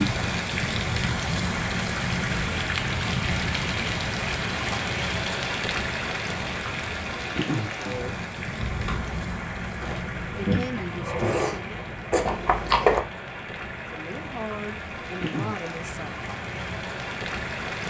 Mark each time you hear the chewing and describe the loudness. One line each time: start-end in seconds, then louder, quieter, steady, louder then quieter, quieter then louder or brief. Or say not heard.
8.6-13.0 louder.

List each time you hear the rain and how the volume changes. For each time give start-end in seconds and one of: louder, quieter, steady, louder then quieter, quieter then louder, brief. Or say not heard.
0.0-17.8 quieter.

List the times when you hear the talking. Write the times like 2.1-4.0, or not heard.
7.8-8.2, 10.3-11.8, 13.8-16.3.